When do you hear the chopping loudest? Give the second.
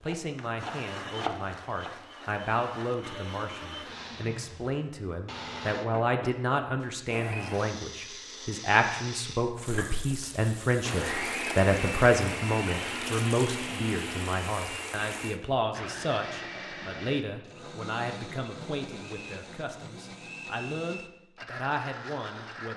1 s.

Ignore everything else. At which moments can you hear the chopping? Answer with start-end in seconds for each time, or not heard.
0.0-1.9.